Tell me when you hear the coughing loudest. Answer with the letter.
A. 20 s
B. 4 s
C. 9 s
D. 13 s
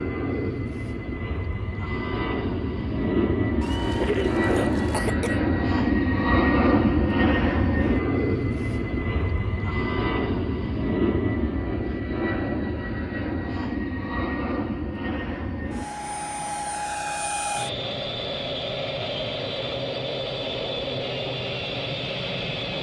B.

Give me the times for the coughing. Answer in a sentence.
You can hear the coughing from 3.6 to 5.3 s.